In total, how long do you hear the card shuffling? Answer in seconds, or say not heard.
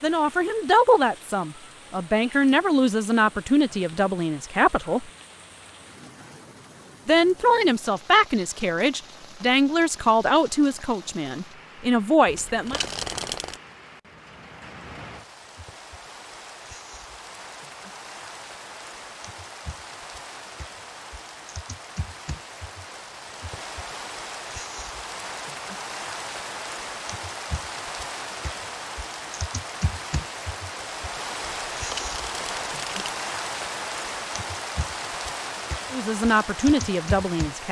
3 s.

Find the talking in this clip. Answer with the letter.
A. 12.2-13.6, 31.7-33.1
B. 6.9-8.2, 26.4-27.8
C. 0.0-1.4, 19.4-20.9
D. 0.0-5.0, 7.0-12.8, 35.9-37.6
D.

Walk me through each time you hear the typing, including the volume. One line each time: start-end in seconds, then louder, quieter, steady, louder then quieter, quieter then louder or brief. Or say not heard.
not heard.